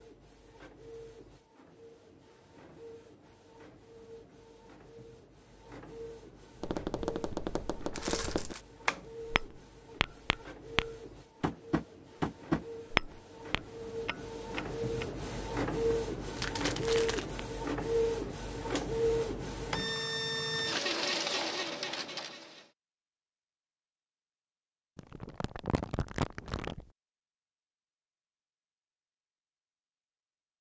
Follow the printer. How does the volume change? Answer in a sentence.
The loudness of the printer goes up.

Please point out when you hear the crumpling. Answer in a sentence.
You can hear the crumpling from 7.9 to 8.7 s, from 16.4 to 17.3 s and from 24.9 to 26.9 s.